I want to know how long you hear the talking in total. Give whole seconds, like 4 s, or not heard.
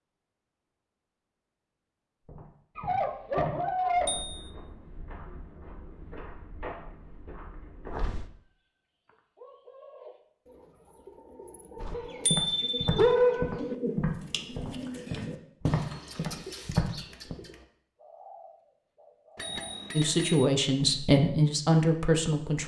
3 s.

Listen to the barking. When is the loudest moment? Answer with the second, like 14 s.
13 s.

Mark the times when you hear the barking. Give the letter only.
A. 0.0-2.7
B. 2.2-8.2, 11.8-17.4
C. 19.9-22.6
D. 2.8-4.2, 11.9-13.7
D.